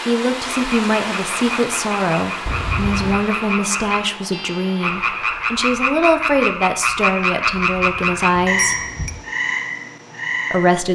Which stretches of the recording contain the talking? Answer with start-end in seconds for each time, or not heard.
0.1-8.8, 10.5-10.9.